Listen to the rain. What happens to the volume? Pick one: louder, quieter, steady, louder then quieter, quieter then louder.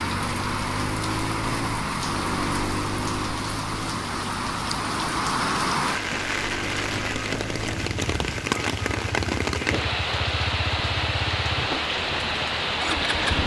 steady.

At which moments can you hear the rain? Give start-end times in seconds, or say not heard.
0.0-13.4.